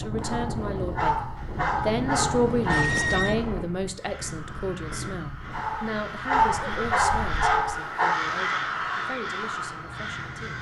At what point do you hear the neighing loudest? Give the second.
3 s.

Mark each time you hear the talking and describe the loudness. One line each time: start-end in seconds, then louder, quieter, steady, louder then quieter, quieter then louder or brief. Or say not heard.
0.0-10.5 quieter.